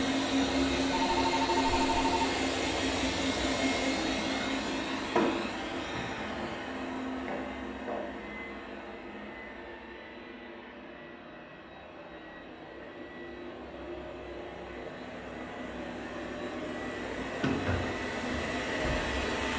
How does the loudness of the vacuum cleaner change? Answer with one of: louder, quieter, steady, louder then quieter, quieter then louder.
quieter then louder.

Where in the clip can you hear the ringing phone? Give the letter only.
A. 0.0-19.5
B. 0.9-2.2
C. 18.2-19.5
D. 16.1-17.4
B.